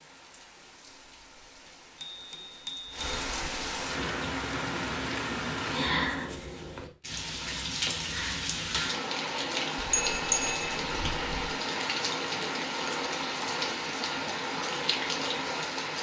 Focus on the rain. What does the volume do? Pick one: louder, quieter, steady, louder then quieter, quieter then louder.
louder.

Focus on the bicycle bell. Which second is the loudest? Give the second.
10 s.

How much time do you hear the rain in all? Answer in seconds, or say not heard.
16 s.